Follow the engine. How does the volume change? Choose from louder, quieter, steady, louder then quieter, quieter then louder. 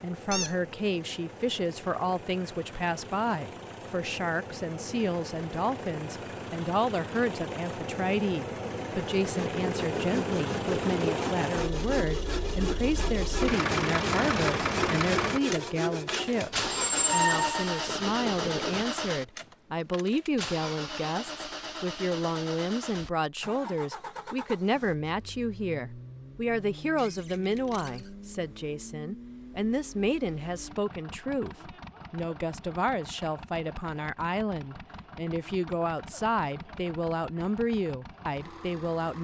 louder then quieter.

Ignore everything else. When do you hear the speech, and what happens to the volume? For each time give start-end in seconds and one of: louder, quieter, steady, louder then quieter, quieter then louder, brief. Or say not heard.
0.0-39.1 steady.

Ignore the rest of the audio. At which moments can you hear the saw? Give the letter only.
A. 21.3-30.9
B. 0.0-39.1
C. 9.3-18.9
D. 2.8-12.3
C.